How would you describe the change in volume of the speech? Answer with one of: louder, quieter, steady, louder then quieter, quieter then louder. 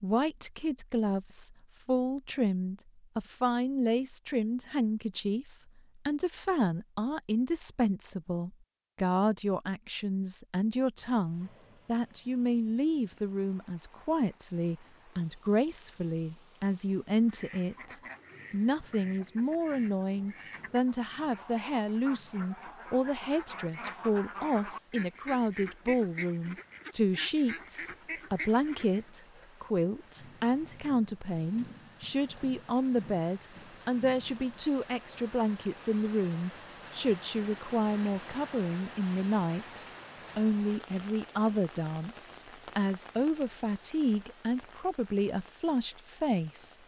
steady.